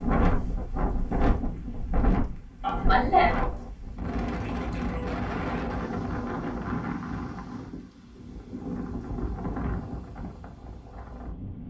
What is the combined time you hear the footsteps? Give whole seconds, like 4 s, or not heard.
not heard.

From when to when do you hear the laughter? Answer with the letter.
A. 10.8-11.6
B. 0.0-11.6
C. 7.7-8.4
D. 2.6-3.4
D.